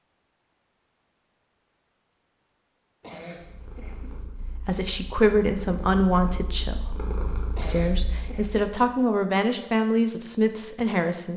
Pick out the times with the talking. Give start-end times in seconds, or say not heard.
4.7-7.0, 7.6-11.3.